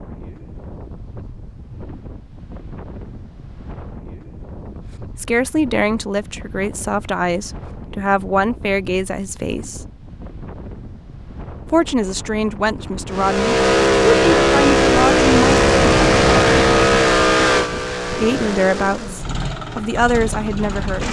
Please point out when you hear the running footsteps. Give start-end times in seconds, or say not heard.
not heard.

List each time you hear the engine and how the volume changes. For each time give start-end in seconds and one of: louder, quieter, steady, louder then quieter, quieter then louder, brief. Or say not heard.
13.1-21.0 quieter.